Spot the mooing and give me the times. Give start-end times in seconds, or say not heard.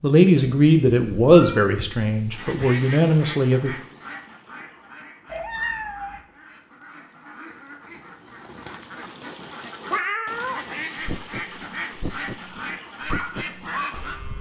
10.7-14.3.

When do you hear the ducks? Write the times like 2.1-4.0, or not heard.
2.3-14.2.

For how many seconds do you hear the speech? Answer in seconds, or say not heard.
4 s.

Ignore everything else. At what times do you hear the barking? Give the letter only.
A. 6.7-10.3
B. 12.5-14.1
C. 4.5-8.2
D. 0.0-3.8
B.